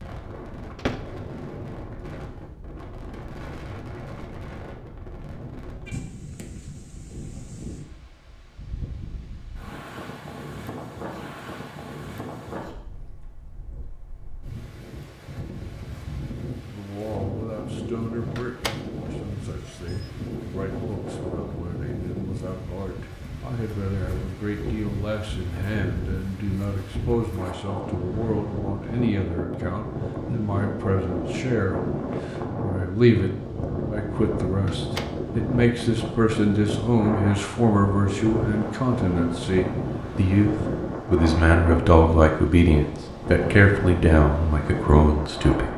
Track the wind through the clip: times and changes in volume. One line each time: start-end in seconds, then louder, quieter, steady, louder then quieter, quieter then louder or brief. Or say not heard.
0.0-45.7 louder.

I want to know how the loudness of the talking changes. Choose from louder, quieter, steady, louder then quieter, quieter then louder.
louder.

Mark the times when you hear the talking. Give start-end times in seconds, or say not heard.
16.7-45.7.